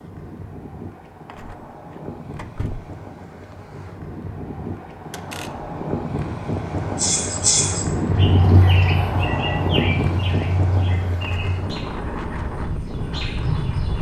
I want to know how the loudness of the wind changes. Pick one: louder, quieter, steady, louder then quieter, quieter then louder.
louder then quieter.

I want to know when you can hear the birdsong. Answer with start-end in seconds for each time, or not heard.
7.0-13.9.